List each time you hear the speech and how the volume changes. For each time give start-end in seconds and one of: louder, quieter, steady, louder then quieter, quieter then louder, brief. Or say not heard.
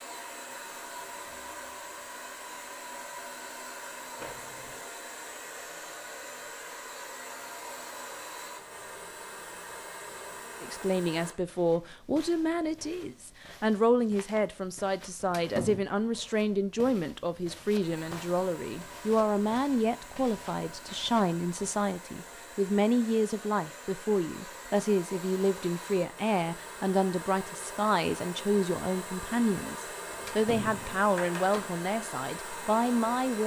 10.6-33.4 steady.